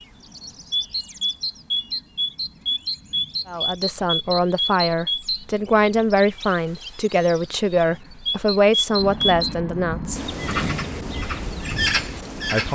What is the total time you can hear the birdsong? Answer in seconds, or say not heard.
13 s.